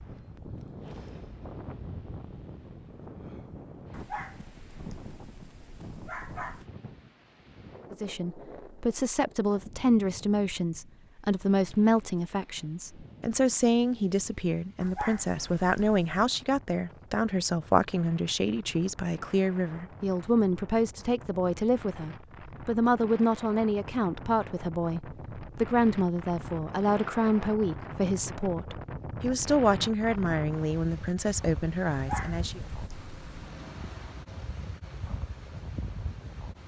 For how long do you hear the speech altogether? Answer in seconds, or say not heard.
25 s.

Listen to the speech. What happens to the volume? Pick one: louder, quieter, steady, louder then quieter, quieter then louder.
steady.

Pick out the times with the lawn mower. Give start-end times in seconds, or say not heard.
not heard.